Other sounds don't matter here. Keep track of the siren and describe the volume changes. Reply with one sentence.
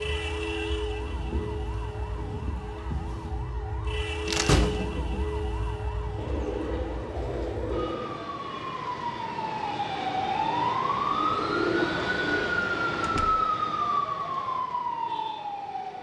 The loudness of the siren goes up.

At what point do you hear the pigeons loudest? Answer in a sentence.
The volume of the pigeons peaks at 12 seconds.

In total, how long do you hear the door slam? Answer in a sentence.
You can hear the door slam for 2 seconds altogether.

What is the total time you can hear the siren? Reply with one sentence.
You can hear the siren for 16 seconds altogether.